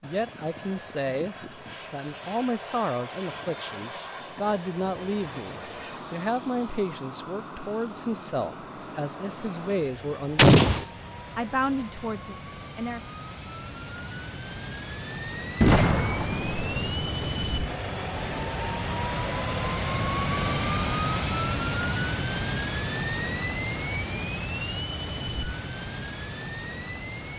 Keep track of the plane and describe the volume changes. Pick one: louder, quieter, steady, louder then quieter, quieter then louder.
louder.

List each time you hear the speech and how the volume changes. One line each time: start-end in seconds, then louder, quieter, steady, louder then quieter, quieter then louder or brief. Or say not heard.
0.0-13.0 steady.